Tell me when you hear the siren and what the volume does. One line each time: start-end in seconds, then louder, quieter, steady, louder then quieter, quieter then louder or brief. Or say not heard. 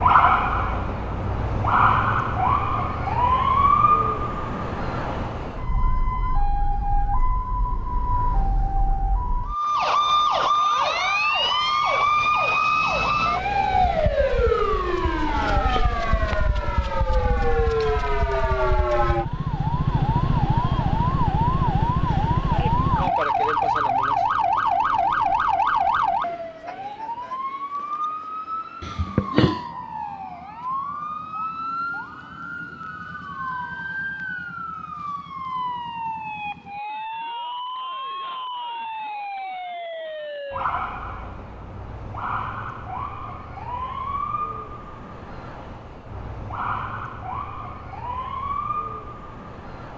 0.0-49.9 quieter.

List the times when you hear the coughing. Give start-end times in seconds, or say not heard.
28.8-29.6.